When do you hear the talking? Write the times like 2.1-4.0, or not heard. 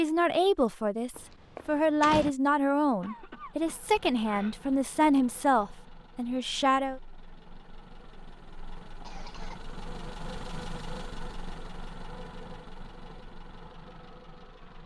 0.0-7.0.